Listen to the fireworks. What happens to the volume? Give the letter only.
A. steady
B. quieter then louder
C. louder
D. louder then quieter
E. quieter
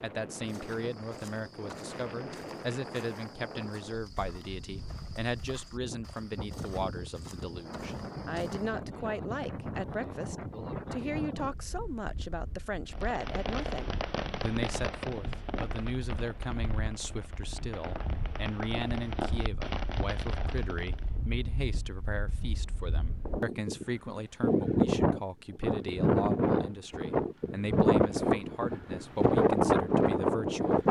B.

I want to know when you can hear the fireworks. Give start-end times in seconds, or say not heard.
12.9-21.1.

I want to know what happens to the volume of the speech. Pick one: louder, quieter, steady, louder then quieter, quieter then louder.
steady.